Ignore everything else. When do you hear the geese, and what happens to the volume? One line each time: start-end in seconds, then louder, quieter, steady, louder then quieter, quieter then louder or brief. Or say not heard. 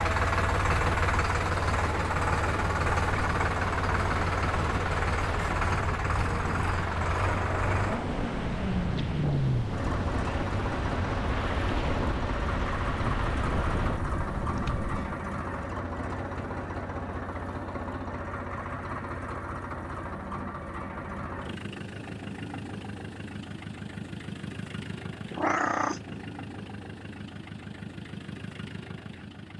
not heard.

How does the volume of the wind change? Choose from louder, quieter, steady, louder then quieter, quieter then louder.
steady.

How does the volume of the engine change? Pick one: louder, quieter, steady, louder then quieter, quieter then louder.
quieter.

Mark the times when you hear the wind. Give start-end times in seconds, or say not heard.
0.0-15.2.